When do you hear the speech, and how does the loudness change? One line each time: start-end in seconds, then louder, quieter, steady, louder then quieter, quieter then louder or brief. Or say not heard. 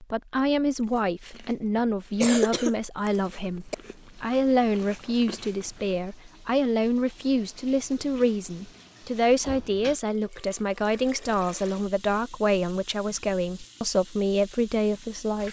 0.0-15.4 steady.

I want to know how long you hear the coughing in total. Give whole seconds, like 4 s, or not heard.
2 s.